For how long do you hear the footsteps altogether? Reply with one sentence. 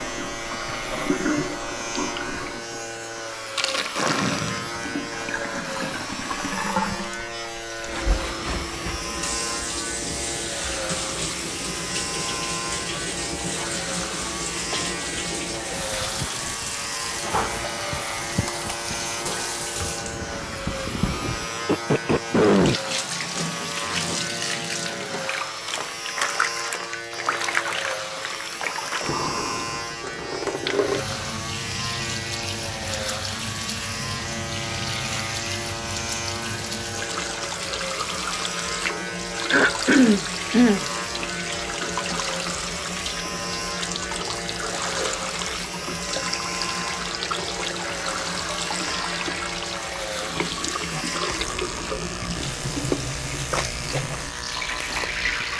You can't hear the footsteps here.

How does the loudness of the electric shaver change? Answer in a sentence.
The loudness of the electric shaver stays about the same.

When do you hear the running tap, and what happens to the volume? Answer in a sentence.
The running tap can be heard from 0.0 to 55.5 s, at a steady volume.